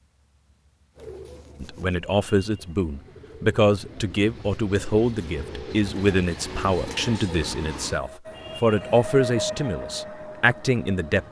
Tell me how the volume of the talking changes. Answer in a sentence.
The volume of the talking stays about the same.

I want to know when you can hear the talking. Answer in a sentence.
You can hear the talking from 1.6 to 11.2 s.